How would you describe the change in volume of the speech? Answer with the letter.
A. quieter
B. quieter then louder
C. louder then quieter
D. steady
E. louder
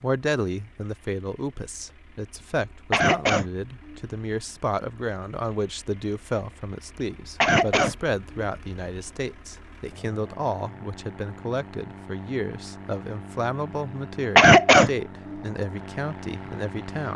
D.